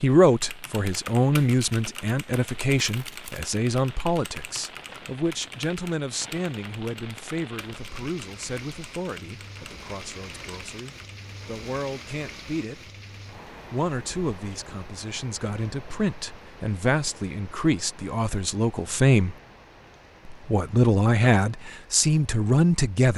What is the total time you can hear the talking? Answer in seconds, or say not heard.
21 s.